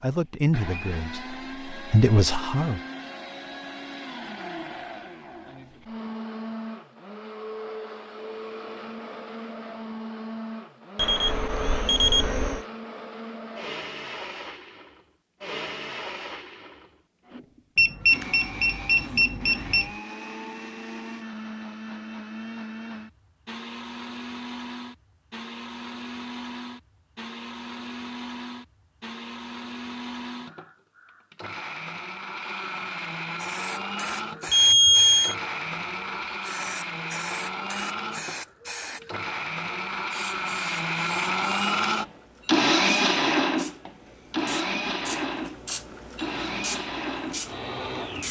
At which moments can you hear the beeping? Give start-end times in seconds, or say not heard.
10.9-12.6, 17.8-19.9, 34.5-35.4.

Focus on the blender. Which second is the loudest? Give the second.
43 s.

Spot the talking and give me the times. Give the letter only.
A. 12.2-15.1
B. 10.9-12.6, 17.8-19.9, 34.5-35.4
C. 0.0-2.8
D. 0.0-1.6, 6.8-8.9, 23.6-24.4
C.